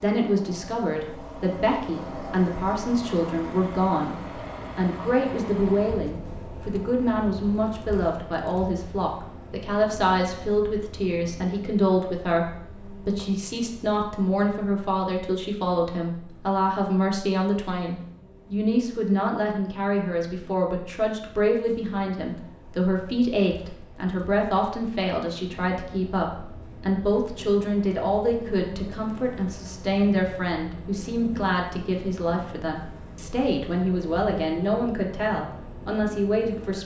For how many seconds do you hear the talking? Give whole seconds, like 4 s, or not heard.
36 s.